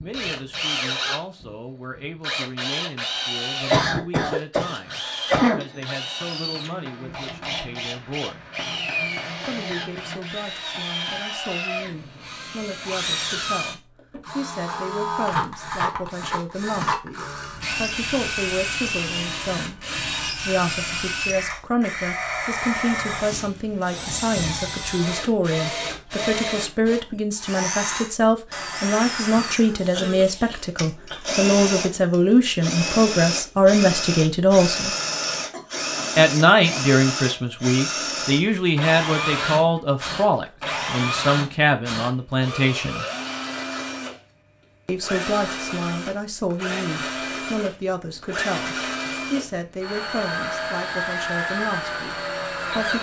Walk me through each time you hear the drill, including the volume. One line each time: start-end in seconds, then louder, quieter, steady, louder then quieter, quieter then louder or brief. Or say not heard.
0.0-52.9 steady.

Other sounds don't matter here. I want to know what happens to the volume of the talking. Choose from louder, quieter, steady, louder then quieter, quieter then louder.
louder then quieter.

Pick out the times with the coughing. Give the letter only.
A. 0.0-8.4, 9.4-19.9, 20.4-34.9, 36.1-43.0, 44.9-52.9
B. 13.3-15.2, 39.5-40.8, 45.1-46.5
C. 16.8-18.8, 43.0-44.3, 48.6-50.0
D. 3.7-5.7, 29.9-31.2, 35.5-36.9
D.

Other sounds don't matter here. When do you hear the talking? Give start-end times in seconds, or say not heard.
0.0-8.4, 9.4-19.9, 20.4-34.9, 36.1-43.0, 44.9-52.9.